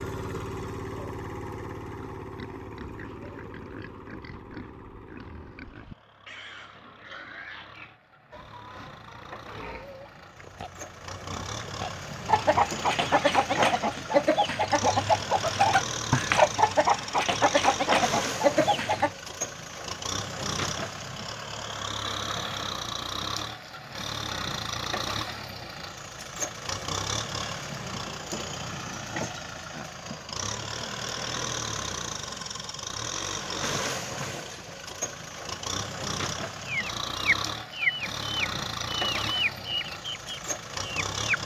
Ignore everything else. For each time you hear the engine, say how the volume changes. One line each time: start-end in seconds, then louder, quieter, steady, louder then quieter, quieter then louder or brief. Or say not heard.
0.0-41.4 louder.